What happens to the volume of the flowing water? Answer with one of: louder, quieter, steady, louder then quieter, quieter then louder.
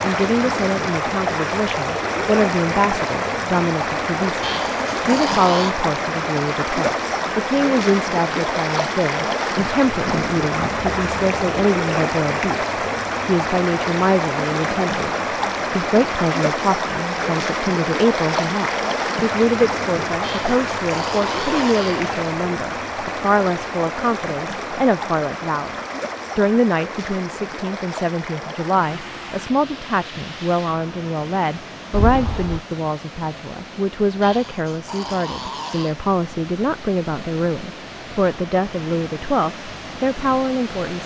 quieter.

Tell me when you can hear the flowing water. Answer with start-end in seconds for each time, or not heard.
0.0-41.0.